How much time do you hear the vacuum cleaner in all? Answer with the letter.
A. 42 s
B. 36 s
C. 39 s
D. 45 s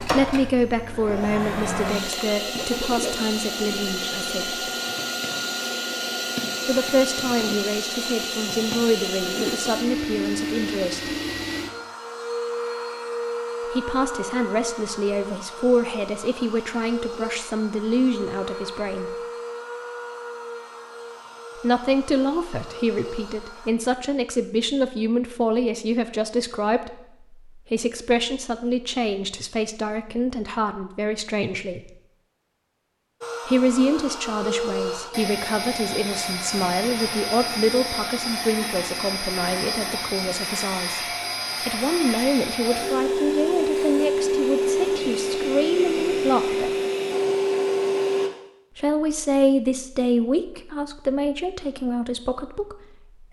C.